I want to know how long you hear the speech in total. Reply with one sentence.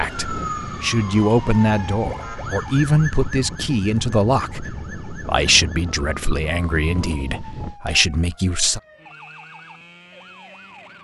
You can hear the speech for 9 seconds altogether.